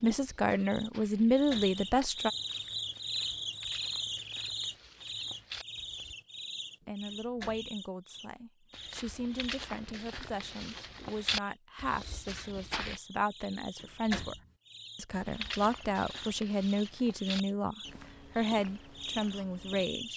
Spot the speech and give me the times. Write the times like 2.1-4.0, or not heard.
0.0-2.3, 6.8-14.3, 14.9-20.1.